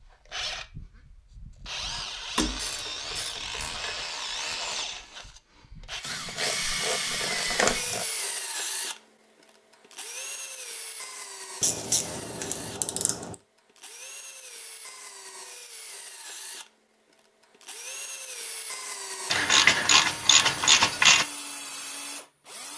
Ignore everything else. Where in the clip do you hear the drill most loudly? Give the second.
7 s.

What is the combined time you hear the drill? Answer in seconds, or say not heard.
23 s.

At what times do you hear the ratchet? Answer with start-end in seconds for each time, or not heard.
2.4-4.0, 6.0-8.1, 11.6-13.3, 19.3-21.2.